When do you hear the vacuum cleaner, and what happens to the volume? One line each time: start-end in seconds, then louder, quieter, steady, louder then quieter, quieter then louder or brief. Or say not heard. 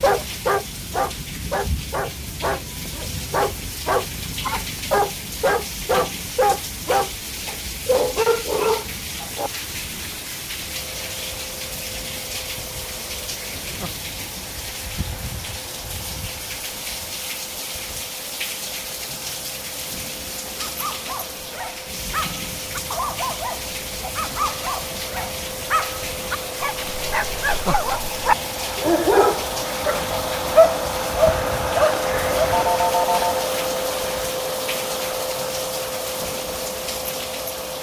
10.6-37.7 louder.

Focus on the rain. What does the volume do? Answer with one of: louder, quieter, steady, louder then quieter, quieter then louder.
steady.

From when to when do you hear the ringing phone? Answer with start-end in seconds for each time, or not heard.
32.5-33.5.